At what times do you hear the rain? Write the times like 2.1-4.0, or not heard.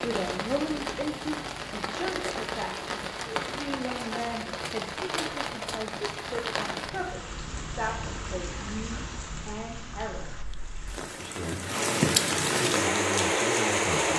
0.0-14.1.